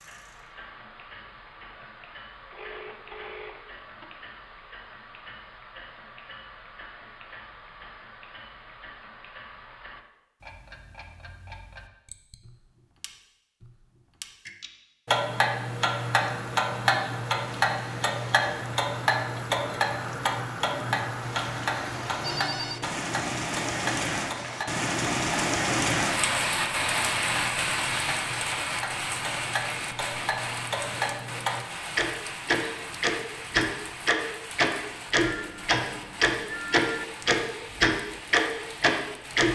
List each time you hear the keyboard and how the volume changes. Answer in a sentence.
The keyboard can't be heard in this clip.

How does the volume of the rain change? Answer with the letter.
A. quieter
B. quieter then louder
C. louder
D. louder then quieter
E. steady
D.